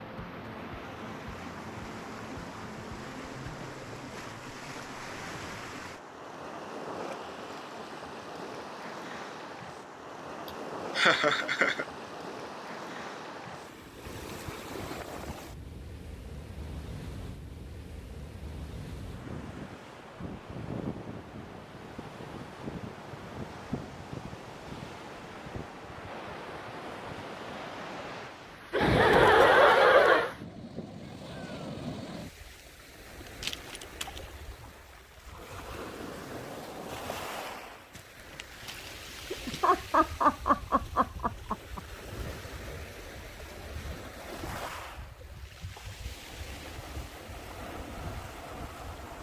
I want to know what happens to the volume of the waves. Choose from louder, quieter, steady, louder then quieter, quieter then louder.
steady.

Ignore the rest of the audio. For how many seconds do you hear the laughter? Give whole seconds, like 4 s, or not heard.
5 s.